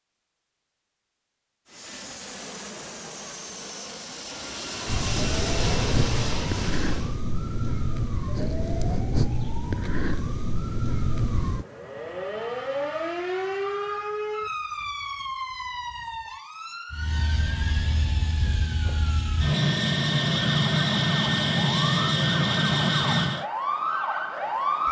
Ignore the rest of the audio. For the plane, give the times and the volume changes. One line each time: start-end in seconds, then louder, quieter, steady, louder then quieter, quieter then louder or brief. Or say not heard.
1.6-7.2 louder
16.9-23.4 louder.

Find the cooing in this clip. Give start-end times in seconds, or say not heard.
not heard.